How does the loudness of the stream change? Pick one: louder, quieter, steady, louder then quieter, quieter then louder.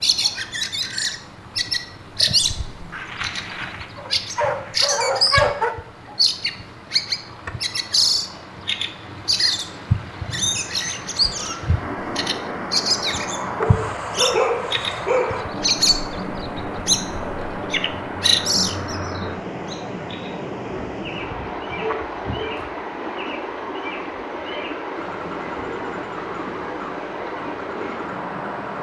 louder.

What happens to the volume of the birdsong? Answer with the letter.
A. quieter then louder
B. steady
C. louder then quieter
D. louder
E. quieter
E.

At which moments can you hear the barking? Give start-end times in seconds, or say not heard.
2.9-5.8, 13.6-15.4, 20.7-22.7.